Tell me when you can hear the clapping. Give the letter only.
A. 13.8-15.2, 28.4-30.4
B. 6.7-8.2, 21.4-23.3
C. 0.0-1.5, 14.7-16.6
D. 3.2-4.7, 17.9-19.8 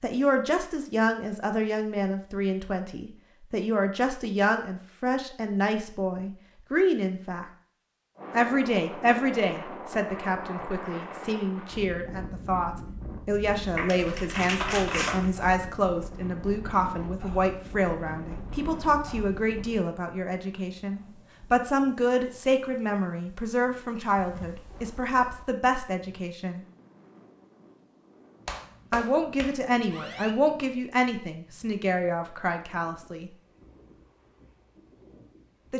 A.